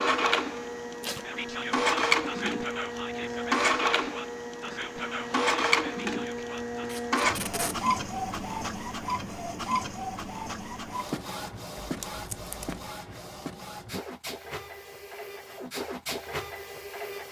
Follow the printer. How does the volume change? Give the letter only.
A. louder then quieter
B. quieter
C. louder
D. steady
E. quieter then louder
B.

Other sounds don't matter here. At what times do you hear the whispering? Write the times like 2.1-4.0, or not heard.
1.2-6.9.